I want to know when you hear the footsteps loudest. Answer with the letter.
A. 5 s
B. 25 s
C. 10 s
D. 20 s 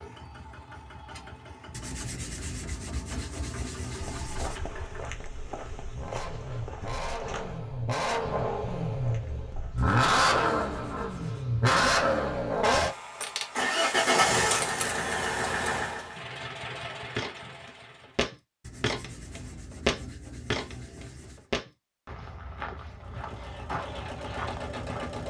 D.